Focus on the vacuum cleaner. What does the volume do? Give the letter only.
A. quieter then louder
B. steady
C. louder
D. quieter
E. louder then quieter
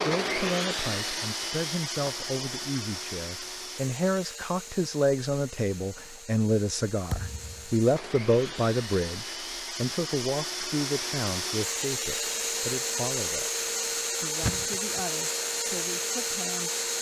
A.